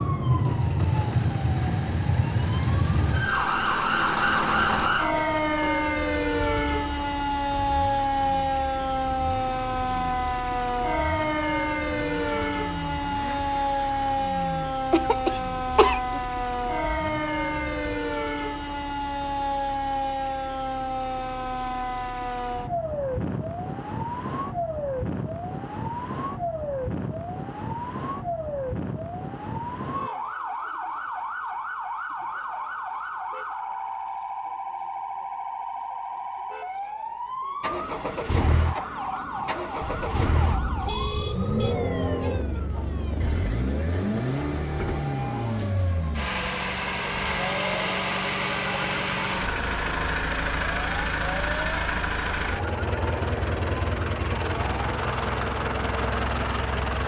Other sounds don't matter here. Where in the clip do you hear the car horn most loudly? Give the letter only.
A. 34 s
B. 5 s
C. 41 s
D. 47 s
C.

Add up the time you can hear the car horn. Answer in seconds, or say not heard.
2 s.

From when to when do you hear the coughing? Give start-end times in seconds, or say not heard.
14.9-16.2.